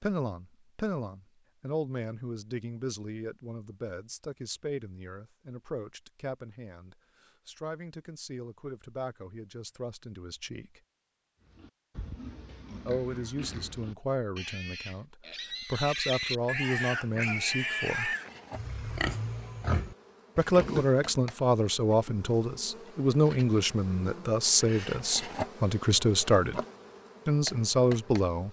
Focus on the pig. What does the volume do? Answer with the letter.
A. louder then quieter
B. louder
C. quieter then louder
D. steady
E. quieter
B.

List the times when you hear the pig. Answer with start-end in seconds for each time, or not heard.
11.4-21.1.